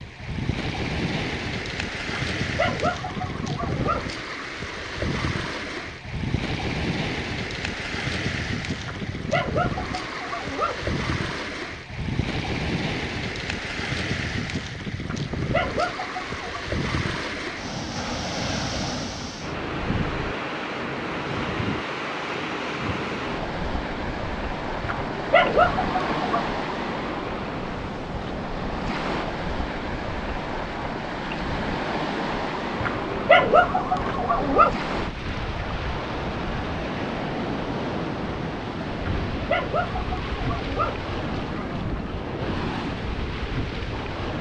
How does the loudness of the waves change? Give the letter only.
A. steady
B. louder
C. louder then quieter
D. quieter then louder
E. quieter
A.